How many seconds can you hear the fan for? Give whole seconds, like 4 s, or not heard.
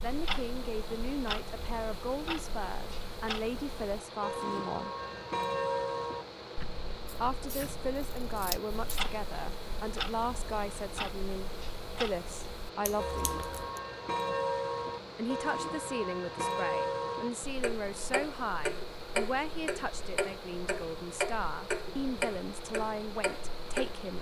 24 s.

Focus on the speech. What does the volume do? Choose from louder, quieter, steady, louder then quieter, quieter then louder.
steady.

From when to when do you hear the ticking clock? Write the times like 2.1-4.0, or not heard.
0.0-24.1.